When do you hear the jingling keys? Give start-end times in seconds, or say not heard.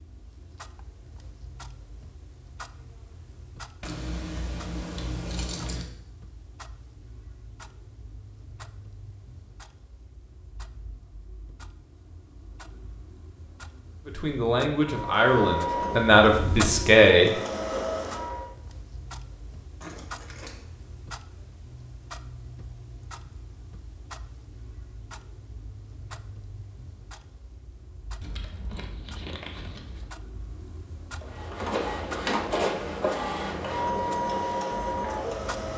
3.8-5.8, 19.8-20.6, 28.2-30.1.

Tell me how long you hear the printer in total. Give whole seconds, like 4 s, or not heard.
8 s.